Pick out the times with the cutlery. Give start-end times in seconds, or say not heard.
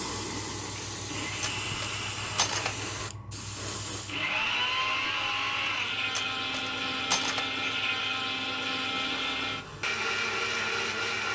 1.4-2.7, 6.2-7.4.